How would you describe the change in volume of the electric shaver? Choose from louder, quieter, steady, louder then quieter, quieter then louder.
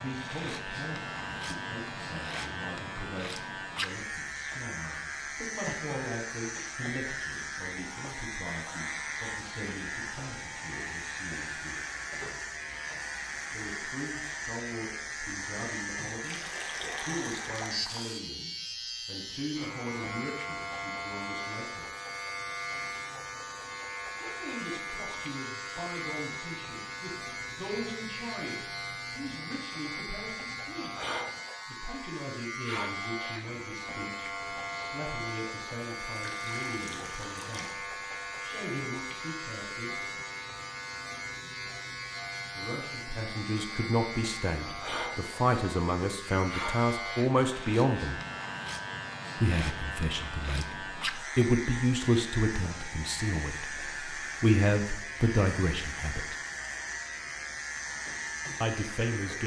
steady.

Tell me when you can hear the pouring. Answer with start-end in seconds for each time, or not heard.
16.2-18.2, 36.1-37.8.